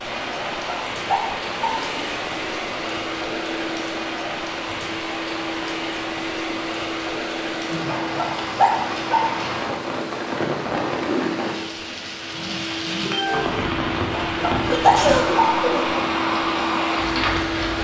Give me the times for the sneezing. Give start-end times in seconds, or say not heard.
14.7-16.0.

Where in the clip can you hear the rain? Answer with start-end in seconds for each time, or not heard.
0.0-17.7.